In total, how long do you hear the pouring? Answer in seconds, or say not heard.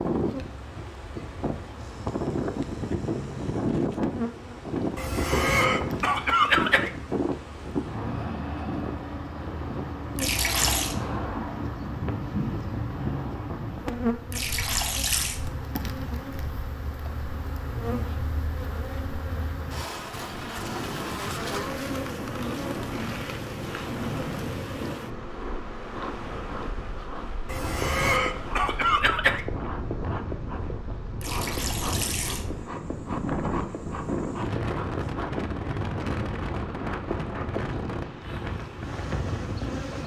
3 s.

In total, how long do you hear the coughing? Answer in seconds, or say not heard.
4 s.